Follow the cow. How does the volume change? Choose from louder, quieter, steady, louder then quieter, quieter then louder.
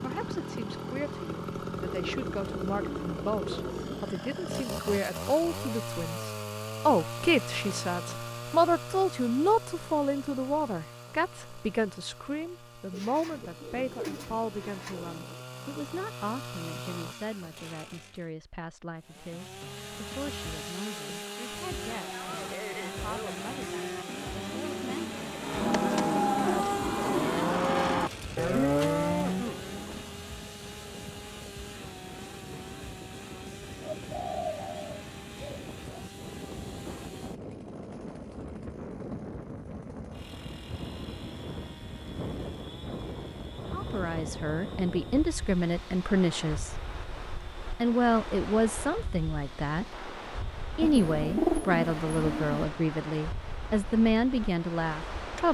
louder.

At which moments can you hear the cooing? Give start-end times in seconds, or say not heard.
1.8-4.2, 12.9-15.4, 27.9-29.1, 33.8-36.0, 50.8-52.6.